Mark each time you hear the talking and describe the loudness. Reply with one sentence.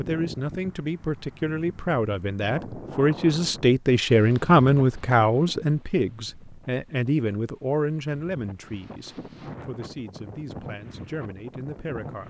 The talking can be heard from 0.0 to 12.2 s, getting louder then quieter.